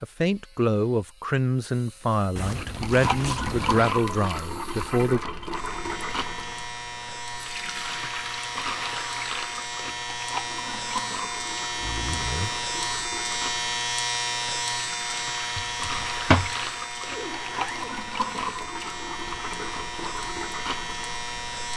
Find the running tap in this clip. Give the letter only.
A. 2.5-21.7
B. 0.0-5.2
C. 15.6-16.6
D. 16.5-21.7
A.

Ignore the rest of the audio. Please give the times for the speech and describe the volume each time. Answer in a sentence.
The speech can be heard from 0.0 to 5.2 s, at a steady volume.